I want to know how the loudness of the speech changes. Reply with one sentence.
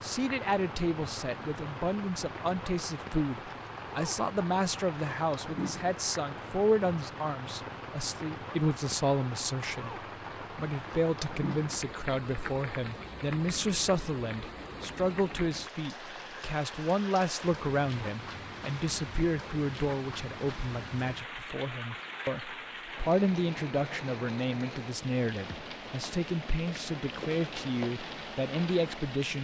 The loudness of the speech stays about the same.